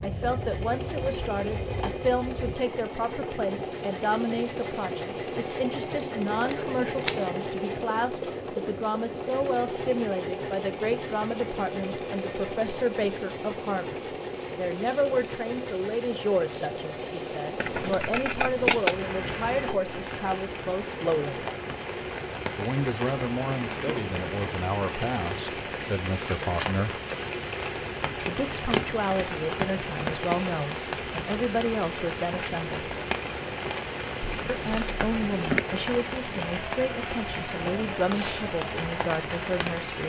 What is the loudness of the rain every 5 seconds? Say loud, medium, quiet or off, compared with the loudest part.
medium, quiet, quiet, medium, loud, loud, loud, loud.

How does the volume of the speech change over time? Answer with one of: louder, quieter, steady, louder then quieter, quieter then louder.
steady.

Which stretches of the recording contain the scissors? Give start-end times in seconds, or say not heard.
5.5-7.2, 17.6-18.9, 34.2-35.6.